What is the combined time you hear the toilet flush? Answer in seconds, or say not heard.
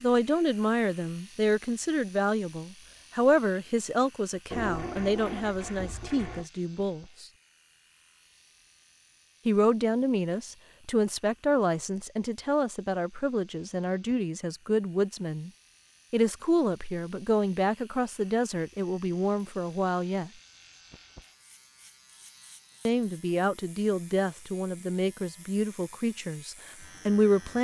2 s.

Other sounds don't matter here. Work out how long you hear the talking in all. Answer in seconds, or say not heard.
22 s.